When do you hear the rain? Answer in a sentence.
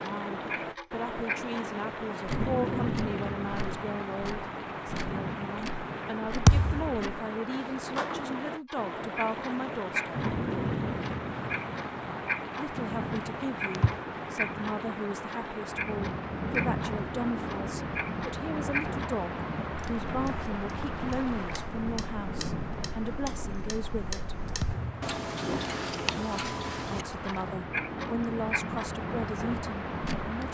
The rain can be heard from 0.0 to 30.4 s.